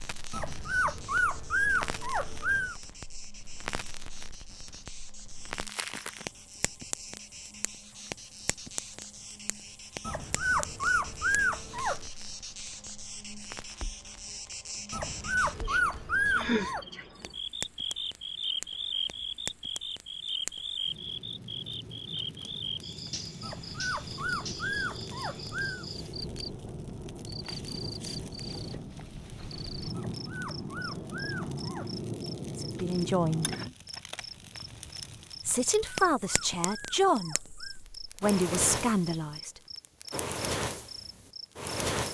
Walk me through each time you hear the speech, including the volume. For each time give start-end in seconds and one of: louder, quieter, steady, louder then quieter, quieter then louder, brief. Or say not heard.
32.6-33.5 brief
35.5-39.6 quieter then louder.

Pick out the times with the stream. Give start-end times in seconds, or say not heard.
not heard.